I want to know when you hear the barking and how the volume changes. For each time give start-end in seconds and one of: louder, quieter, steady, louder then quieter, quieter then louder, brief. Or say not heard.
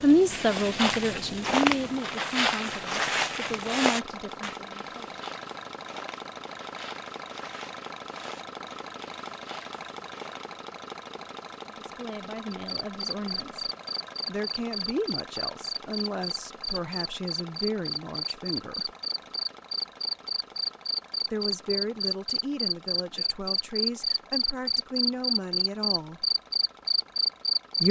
not heard.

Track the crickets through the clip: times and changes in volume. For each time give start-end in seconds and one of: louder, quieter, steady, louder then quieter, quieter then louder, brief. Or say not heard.
12.5-27.8 louder.